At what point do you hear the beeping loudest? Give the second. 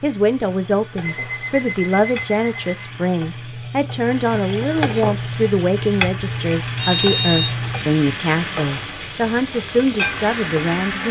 7 s.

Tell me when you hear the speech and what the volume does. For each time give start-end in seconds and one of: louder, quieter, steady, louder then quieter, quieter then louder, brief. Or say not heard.
0.0-11.0 steady.